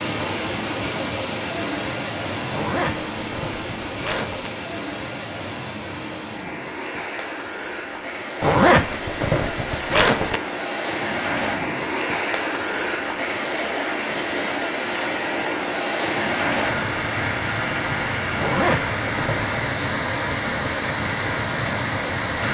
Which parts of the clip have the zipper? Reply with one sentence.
The zipper can be heard from 2.5 to 4.5 s, from 8.4 to 10.4 s and from 18.4 to 19.5 s.